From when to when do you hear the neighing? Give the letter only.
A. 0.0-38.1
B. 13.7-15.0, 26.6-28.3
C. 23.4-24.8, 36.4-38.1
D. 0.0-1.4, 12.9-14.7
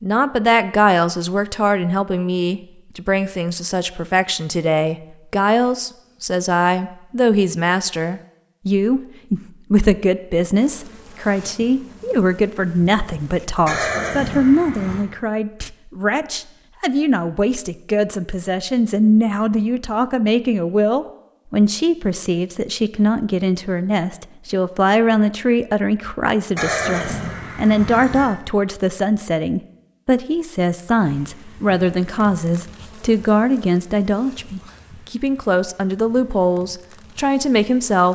B.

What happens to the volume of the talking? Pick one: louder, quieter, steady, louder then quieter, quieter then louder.
steady.